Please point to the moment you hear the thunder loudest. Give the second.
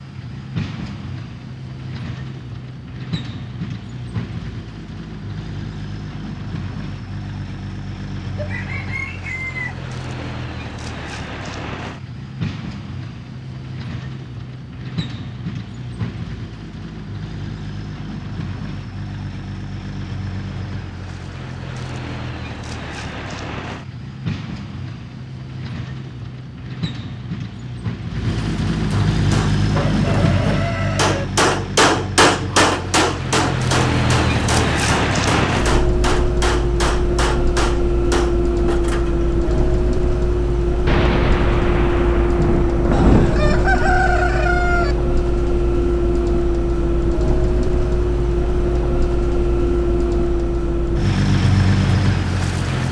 43 s.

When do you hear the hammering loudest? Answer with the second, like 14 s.
32 s.